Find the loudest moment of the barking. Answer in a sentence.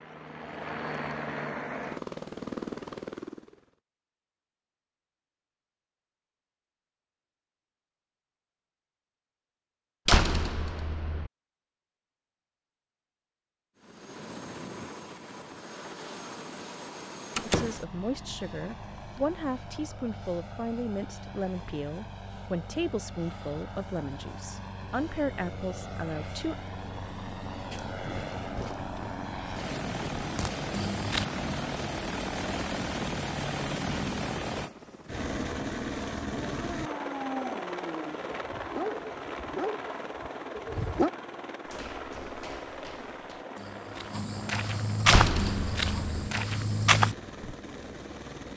The volume of the barking peaks at 41 seconds.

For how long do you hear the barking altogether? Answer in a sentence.
You can hear the barking for 5 seconds altogether.